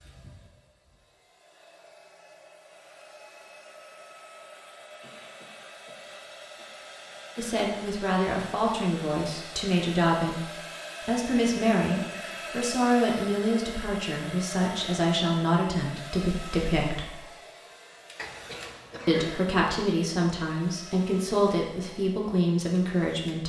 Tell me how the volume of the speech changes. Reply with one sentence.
The volume of the speech stays about the same.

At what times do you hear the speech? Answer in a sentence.
The speech can be heard from 7.3 to 17.1 s and from 19.1 to 23.4 s.